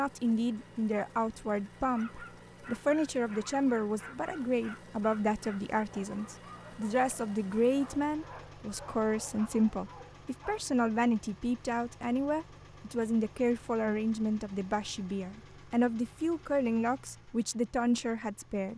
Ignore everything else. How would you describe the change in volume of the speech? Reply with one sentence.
The volume of the speech stays about the same.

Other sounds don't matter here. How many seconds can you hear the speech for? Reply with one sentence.
You can hear the speech for 19 seconds altogether.